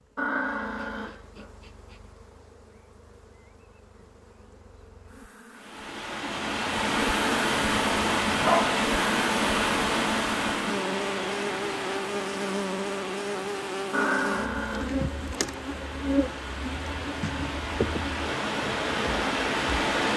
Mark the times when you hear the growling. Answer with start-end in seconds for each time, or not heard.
0.1-1.4, 7.5-8.8, 13.9-14.9.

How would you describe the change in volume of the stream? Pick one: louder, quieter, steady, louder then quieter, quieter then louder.
quieter then louder.